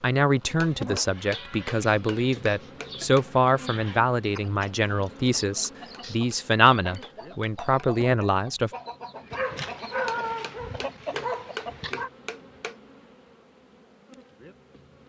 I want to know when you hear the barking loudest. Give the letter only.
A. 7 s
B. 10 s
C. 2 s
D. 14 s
B.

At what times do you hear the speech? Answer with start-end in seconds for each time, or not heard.
0.0-8.7.